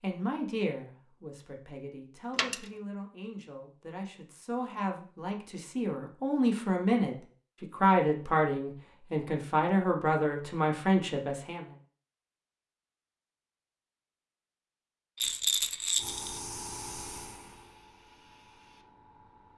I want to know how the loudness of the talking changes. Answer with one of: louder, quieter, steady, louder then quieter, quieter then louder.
louder.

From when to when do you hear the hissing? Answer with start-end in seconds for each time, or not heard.
15.9-19.5.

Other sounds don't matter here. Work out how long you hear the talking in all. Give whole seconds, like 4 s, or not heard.
12 s.